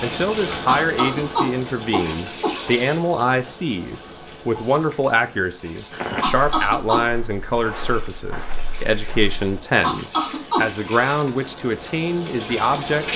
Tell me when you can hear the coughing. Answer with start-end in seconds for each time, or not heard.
0.7-2.5, 6.2-7.0, 9.8-10.7.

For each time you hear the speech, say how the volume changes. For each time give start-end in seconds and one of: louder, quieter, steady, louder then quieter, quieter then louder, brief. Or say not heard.
0.0-13.1 steady.